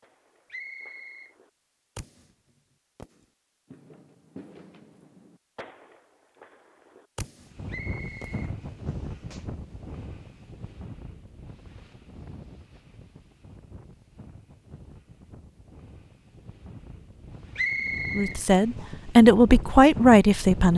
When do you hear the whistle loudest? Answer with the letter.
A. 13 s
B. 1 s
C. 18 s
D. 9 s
C.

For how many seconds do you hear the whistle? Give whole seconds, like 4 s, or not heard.
3 s.